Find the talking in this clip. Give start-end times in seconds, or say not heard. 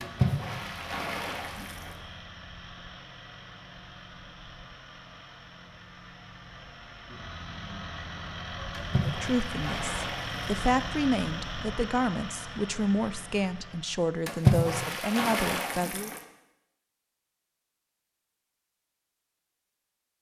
9.0-16.1.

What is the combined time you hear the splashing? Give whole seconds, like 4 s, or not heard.
6 s.